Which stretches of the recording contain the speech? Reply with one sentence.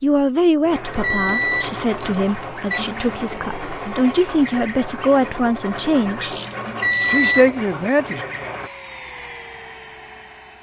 You can hear the speech from 0.0 to 6.3 s and from 7.0 to 8.2 s.